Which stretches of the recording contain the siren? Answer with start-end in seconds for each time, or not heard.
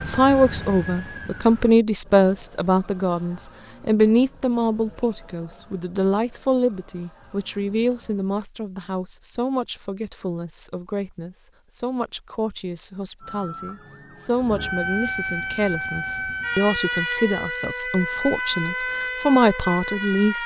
0.0-1.8, 13.2-20.4.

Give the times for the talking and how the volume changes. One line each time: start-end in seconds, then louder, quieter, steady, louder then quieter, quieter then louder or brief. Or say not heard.
0.1-20.4 quieter then louder.